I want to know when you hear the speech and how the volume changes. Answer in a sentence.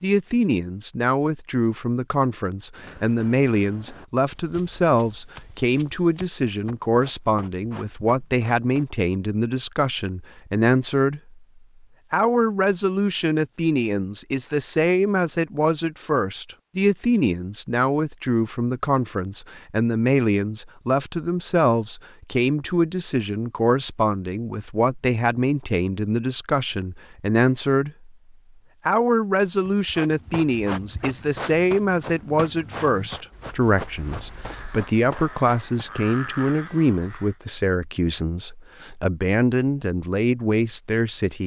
You can hear the speech from 0.0 to 11.4 s, at a steady volume; from 12.1 to 28.1 s, at a steady volume; and from 28.9 to 41.4 s, at a steady volume.